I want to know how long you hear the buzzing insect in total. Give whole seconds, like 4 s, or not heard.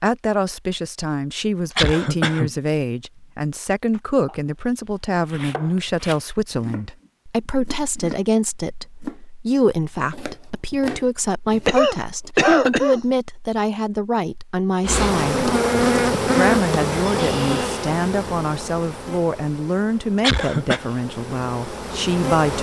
8 s.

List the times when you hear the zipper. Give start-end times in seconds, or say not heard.
not heard.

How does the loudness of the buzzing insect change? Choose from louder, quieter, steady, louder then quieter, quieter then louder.
quieter then louder.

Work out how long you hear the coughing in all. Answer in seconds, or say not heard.
3 s.